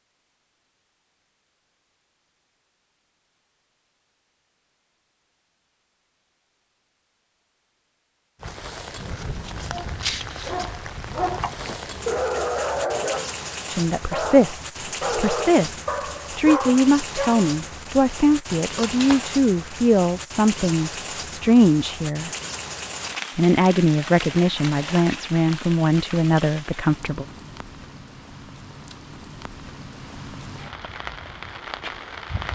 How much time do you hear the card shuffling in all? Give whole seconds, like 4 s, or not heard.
2 s.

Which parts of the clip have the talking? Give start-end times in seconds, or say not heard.
13.7-22.3, 23.4-27.2.